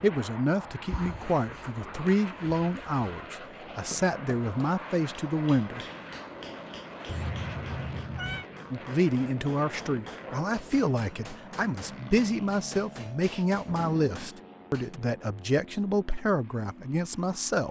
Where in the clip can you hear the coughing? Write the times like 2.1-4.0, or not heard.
not heard.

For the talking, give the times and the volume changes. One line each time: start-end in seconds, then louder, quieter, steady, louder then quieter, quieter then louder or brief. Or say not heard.
0.0-5.8 steady
8.7-17.6 steady.